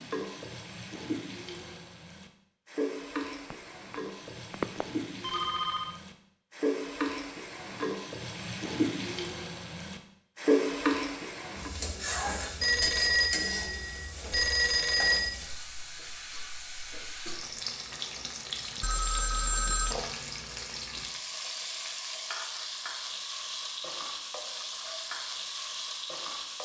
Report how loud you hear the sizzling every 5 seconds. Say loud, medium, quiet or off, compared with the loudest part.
medium, loud, loud, medium, medium, medium.